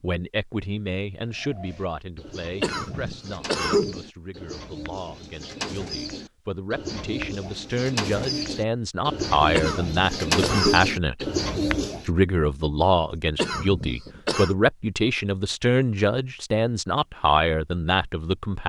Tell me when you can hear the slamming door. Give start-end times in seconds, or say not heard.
not heard.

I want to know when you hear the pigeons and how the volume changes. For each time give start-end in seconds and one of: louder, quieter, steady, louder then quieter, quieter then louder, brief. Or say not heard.
1.2-12.1 louder.